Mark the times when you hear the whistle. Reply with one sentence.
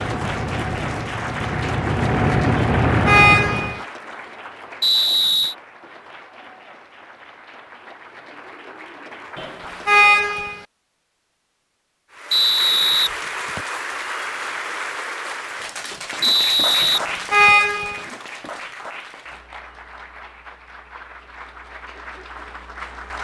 You can hear the whistle from 4.8 to 5.5 s, from 12.3 to 13.6 s and from 16.2 to 17.6 s.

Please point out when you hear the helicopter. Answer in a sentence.
The helicopter can be heard from 0.0 to 3.9 s.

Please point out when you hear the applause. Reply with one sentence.
The applause can be heard from 0.0 to 10.6 s and from 12.1 to 23.1 s.